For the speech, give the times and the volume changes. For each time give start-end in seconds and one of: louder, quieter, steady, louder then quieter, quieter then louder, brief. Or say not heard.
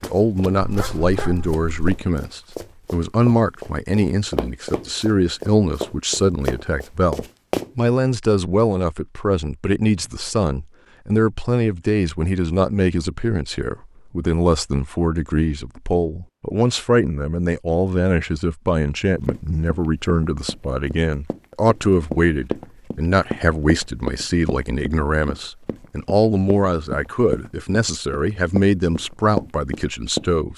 0.0-30.5 steady.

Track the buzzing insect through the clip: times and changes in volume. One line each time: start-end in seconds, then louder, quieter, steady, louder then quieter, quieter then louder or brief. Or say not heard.
not heard.